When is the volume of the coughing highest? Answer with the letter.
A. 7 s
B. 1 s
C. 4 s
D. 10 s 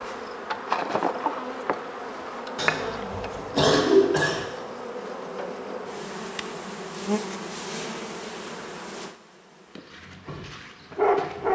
C.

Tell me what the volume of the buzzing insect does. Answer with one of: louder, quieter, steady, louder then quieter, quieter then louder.
quieter.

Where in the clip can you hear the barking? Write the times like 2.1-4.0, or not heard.
10.1-11.4.